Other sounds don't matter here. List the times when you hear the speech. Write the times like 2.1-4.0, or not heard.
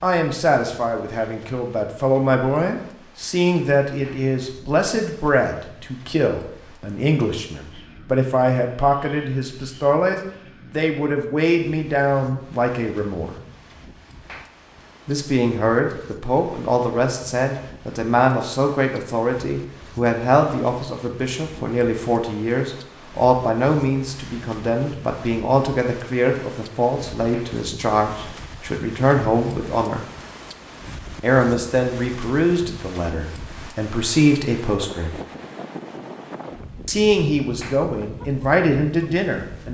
0.0-13.3, 15.1-30.0, 31.2-35.2, 36.9-39.7.